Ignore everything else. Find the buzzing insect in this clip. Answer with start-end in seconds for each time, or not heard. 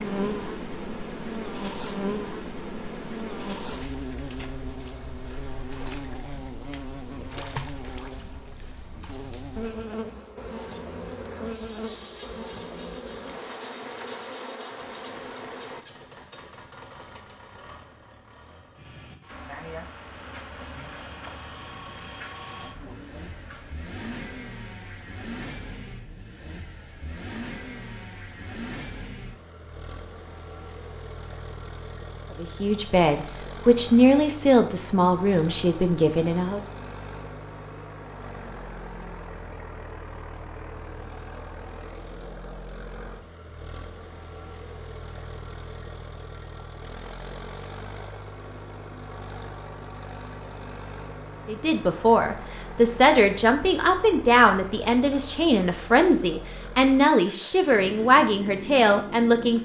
0.0-15.8, 19.2-23.8.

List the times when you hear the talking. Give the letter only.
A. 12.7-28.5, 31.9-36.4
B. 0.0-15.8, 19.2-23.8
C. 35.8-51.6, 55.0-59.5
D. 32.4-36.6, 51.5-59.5
D.